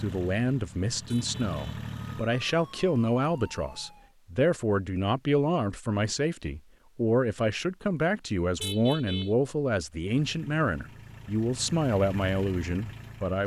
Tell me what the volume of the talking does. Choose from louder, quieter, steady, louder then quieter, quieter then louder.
steady.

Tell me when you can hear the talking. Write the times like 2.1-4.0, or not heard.
0.0-13.4.